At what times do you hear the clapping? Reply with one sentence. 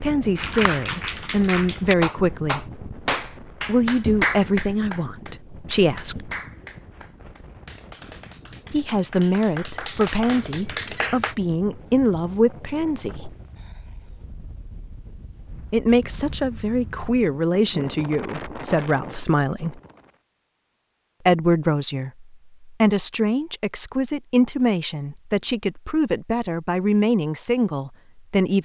The clapping can be heard from 0.3 to 11.3 s.